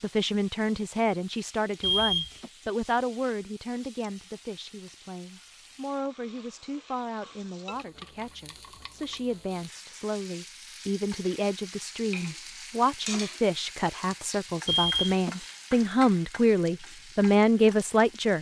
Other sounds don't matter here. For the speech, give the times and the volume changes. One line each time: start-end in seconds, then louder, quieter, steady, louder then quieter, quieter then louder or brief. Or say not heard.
0.0-18.3 quieter then louder.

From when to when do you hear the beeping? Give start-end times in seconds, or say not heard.
1.8-2.5, 14.7-15.3.